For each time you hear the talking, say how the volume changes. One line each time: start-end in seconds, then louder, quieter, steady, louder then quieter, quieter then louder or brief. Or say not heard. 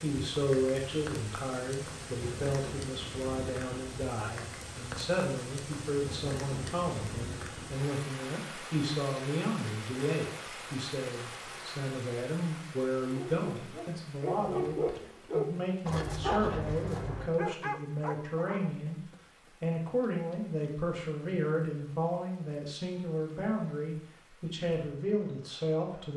0.0-26.1 steady.